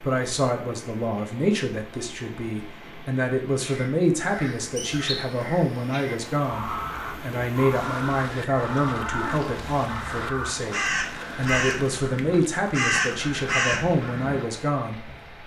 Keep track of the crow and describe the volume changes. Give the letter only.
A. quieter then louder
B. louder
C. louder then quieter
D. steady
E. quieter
B.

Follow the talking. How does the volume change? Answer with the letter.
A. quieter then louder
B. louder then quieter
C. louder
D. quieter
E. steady
E.